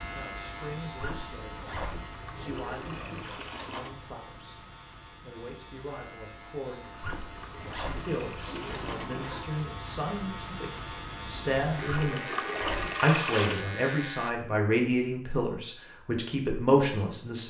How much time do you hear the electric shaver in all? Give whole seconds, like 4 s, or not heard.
14 s.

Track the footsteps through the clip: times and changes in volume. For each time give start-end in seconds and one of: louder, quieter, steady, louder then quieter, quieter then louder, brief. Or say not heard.
not heard.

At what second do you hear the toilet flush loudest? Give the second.
13 s.